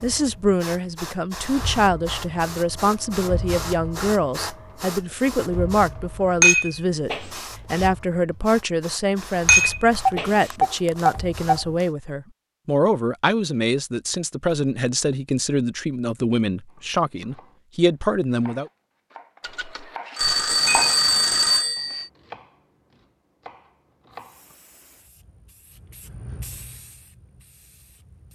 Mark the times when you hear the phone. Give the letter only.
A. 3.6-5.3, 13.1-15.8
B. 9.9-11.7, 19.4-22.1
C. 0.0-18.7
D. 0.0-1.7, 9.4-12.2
B.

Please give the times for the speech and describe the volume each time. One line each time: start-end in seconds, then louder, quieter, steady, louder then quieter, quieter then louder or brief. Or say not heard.
0.0-18.7 steady.